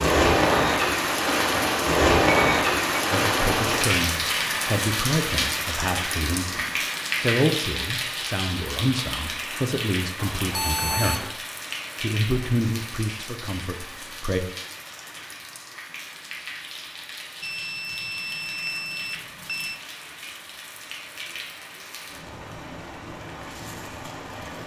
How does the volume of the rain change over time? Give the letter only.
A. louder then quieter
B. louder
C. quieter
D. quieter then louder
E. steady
C.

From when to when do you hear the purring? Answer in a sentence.
You can't hear the purring here.